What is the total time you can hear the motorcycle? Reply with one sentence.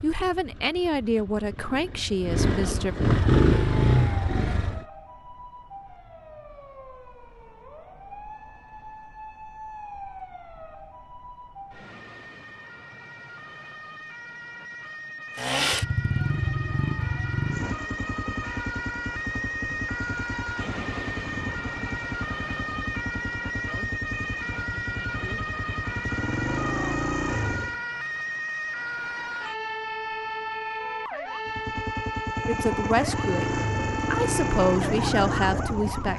You can hear the motorcycle for 22 seconds altogether.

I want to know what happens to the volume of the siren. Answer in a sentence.
The loudness of the siren goes up.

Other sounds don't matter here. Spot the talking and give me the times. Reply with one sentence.
You can hear the talking from 0.0 to 3.0 s and from 32.5 to 36.1 s.